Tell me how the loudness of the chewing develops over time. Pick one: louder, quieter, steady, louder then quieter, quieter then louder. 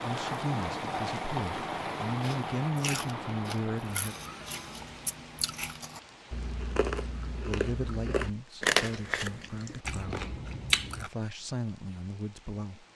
louder then quieter.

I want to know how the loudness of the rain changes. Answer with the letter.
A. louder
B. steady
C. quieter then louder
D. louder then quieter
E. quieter
E.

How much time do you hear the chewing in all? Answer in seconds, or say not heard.
9 s.